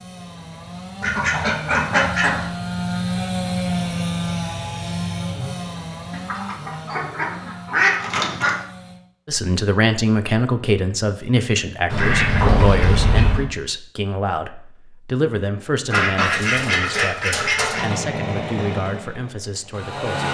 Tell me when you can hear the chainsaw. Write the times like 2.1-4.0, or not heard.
0.0-9.0, 17.7-20.2.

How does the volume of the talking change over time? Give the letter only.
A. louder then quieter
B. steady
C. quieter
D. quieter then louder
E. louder
C.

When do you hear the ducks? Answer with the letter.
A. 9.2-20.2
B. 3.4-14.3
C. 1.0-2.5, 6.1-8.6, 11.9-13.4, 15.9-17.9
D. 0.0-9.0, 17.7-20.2
C.